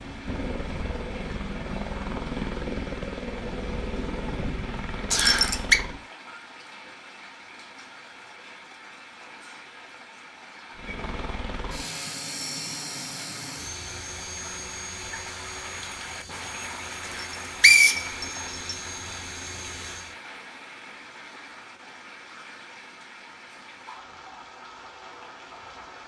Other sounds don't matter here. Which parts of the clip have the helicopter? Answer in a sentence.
You can hear the helicopter from 0.0 to 6.0 s and from 10.8 to 20.1 s.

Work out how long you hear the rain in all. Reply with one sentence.
The rain can be heard for 26 seconds in total.